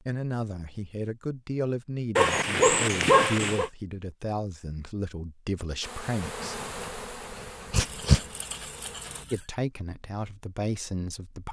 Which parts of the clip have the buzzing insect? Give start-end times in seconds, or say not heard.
5.8-9.2.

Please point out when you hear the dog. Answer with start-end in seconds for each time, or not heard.
2.1-3.7, 6.2-8.2.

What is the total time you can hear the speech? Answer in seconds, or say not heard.
9 s.